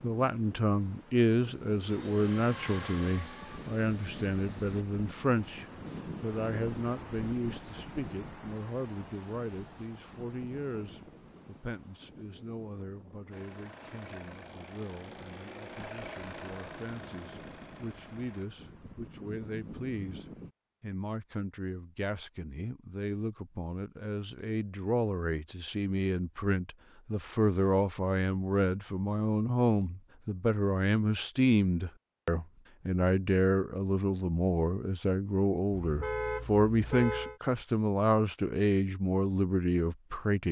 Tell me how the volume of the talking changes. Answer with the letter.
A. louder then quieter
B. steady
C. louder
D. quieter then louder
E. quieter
D.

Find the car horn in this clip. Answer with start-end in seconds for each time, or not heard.
35.7-37.4.